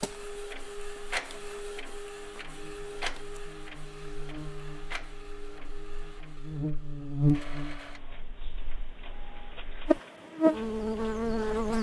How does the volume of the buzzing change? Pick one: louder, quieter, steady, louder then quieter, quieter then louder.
louder.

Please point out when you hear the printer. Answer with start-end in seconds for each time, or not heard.
0.0-11.7.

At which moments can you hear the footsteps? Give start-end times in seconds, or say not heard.
not heard.